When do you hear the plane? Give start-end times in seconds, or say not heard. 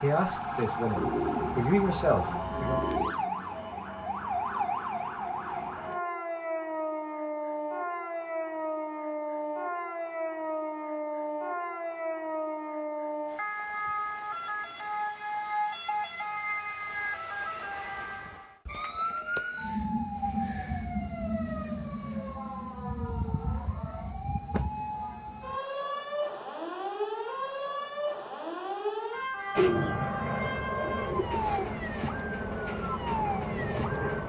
29.5-34.2.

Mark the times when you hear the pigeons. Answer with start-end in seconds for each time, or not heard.
0.9-3.1, 29.6-31.6.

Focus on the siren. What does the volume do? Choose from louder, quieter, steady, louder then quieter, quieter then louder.
steady.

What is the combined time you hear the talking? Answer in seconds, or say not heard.
3 s.